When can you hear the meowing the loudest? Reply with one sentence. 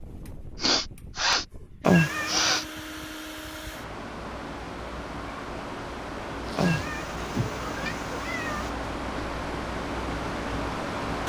The volume of the meowing peaks at 2 seconds.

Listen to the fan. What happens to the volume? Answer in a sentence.
The volume of the fan goes up.